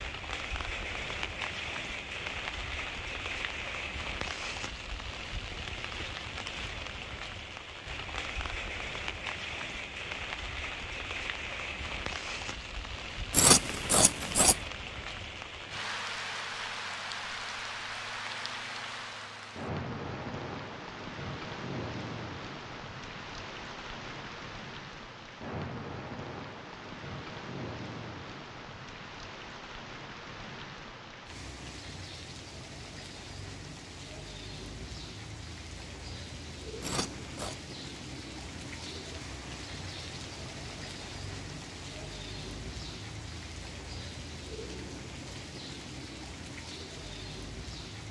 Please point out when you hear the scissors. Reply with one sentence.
You can hear the scissors from 13.3 to 14.6 s and from 36.8 to 37.5 s.